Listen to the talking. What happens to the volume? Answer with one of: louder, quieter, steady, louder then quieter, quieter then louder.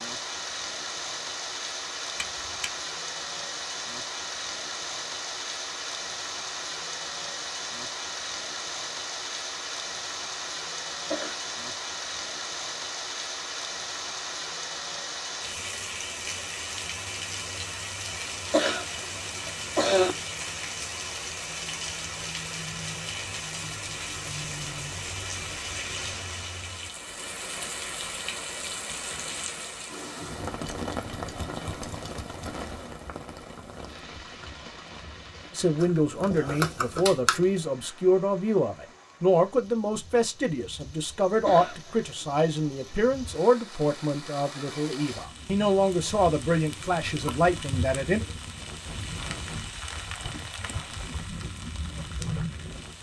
steady.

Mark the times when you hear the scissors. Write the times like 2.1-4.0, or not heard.
2.1-2.7, 30.4-32.5, 35.8-37.4.